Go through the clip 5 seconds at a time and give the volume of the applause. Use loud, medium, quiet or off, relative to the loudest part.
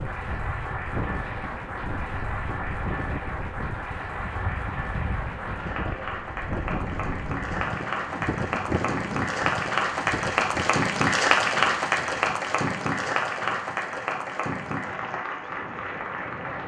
medium, medium, loud, medium.